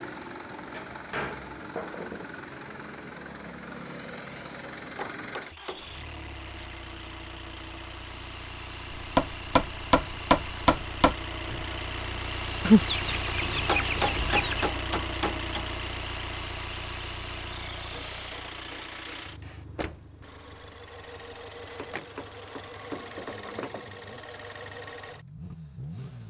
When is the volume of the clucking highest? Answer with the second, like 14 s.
13 s.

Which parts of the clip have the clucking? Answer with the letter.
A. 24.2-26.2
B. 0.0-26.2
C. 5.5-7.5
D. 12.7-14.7
D.